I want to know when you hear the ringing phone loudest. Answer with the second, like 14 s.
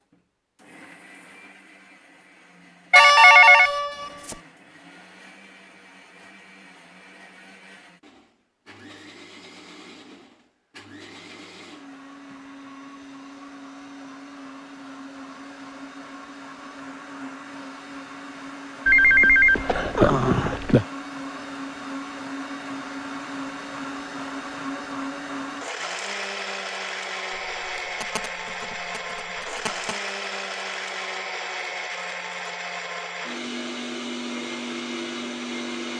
3 s.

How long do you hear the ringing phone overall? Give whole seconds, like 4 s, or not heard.
6 s.